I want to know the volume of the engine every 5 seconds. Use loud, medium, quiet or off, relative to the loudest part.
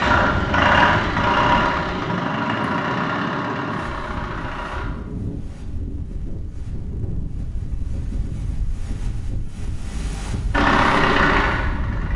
loud, off, loud.